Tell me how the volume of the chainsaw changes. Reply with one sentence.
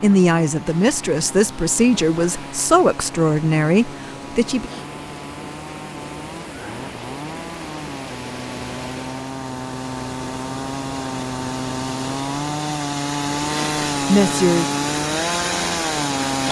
The volume of the chainsaw goes up.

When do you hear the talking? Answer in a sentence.
You can hear the talking from 0.0 to 4.7 s and from 14.1 to 14.8 s.